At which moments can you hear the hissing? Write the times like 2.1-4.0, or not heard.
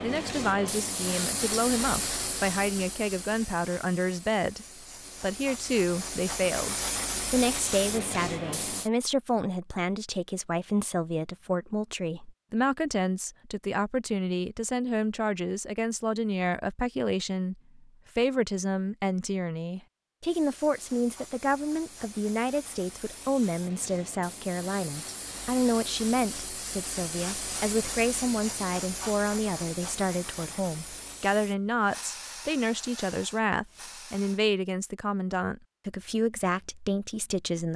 0.0-8.9, 20.2-34.4.